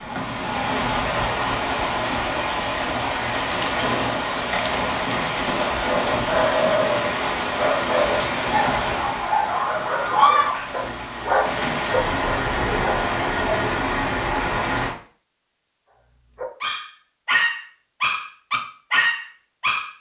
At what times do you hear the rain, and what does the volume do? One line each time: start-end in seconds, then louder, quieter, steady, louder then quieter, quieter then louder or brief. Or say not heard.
0.0-14.9 steady.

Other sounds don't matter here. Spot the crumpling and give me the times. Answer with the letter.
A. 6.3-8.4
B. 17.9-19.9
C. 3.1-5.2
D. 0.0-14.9
C.